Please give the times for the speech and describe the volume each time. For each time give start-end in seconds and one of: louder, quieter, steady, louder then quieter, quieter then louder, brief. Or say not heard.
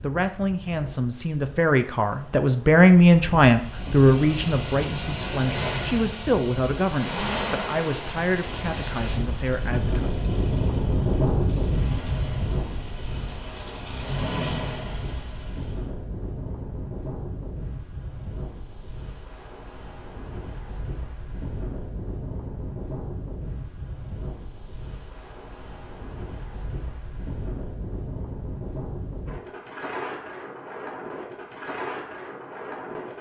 0.0-10.0 louder then quieter.